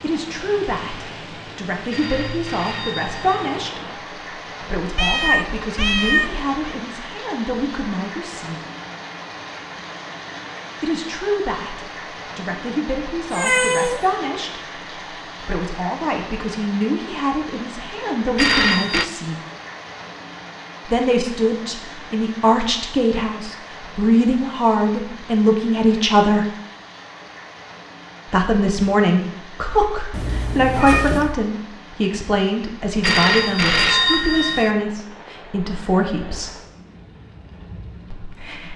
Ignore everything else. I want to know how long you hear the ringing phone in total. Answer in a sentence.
You can hear the ringing phone for 4 seconds altogether.